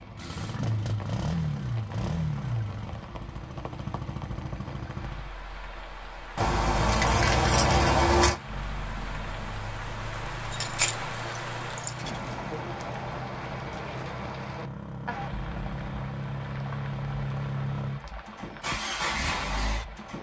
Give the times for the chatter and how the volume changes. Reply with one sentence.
The chatter can't be heard in this clip.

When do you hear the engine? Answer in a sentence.
You can hear the engine from 0.0 to 5.3 s and from 8.2 to 20.1 s.